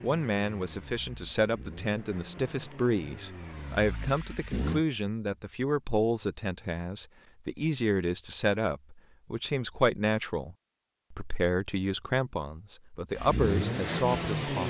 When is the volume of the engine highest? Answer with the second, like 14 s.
14 s.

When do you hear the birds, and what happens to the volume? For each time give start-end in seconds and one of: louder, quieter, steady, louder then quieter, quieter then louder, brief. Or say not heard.
not heard.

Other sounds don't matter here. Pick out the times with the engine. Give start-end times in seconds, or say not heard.
0.0-4.8, 13.2-14.6.